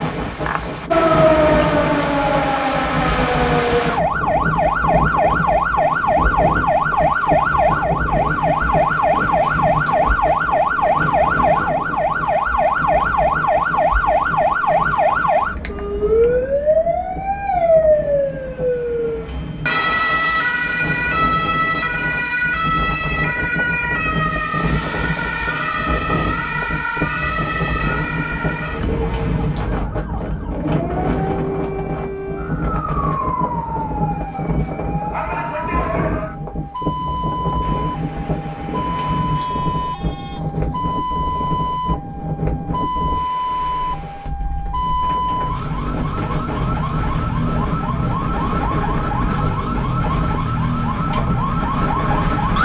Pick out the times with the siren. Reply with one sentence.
You can hear the siren from 0.0 to 52.6 s.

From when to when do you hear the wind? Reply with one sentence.
You can hear the wind from 0.0 to 52.6 s.